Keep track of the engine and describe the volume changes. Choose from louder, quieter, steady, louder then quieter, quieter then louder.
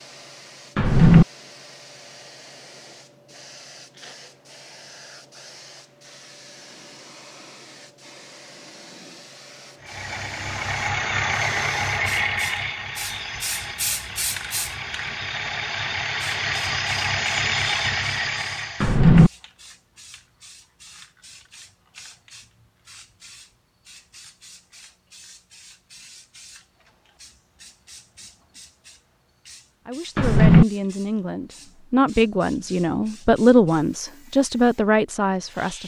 quieter then louder.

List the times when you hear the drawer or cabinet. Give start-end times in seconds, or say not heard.
0.8-1.2, 18.8-19.3, 30.1-30.6.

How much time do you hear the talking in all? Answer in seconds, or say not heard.
6 s.